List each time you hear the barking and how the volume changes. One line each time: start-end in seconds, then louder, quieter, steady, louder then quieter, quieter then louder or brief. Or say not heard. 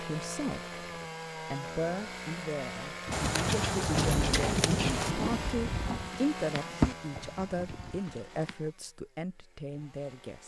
not heard.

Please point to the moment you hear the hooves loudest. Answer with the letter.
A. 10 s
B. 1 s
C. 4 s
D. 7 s
D.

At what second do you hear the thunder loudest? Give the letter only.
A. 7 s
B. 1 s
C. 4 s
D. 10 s
C.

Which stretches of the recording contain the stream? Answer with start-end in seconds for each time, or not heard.
not heard.